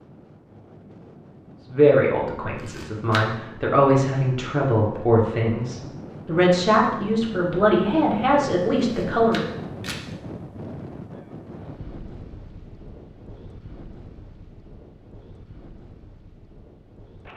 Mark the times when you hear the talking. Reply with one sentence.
You can hear the talking from 1.7 to 9.4 s.